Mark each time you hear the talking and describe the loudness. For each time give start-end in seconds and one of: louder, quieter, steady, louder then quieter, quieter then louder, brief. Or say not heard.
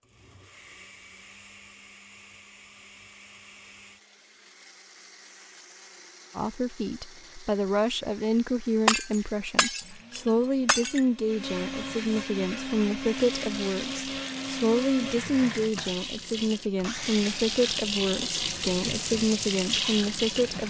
6.3-20.6 steady.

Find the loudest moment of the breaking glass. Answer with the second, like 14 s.
9 s.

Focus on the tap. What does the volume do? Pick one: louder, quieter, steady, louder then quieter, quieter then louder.
louder.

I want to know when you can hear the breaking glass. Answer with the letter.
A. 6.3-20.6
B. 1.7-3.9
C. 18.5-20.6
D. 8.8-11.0
D.